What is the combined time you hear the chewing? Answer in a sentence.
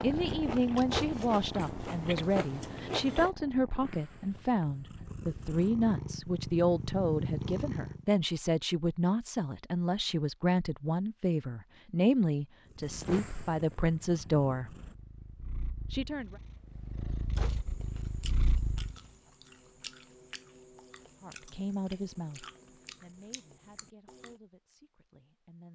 You can hear the chewing for 10 seconds altogether.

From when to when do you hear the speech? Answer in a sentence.
You can hear the speech from 0.0 to 14.8 s, from 15.9 to 16.4 s and from 21.2 to 25.7 s.